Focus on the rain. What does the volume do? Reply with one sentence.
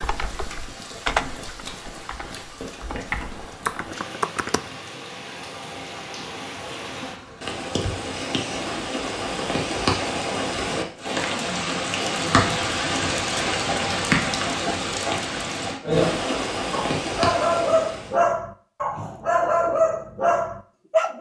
The loudness of the rain goes up.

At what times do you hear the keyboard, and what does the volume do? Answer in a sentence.
You can hear the keyboard from 0.0 to 4.6 s, getting quieter then louder.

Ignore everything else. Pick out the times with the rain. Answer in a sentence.
The rain can be heard from 0.0 to 18.2 s.